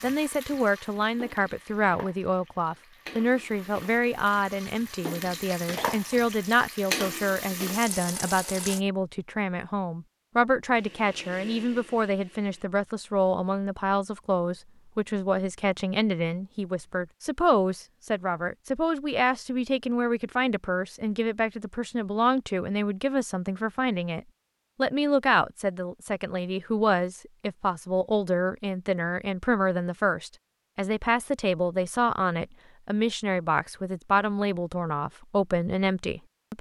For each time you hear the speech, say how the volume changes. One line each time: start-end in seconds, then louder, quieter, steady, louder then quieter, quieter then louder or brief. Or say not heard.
0.0-36.5 steady.